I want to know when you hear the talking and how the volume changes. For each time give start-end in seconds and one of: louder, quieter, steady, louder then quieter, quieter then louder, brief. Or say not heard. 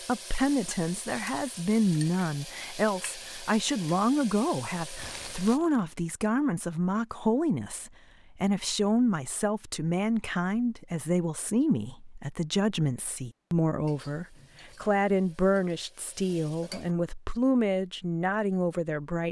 0.1-19.2 steady.